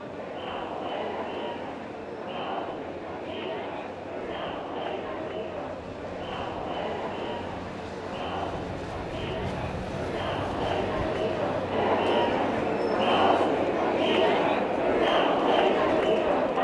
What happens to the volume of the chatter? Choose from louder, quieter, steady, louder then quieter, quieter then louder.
louder.